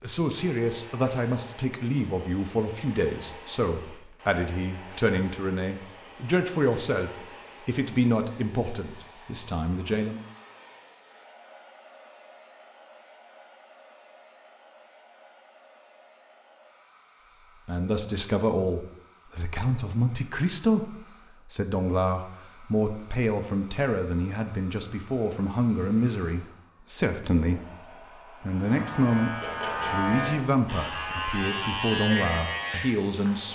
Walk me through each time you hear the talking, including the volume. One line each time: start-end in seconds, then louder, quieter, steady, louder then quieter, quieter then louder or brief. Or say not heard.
0.0-10.2 steady
17.6-33.5 steady.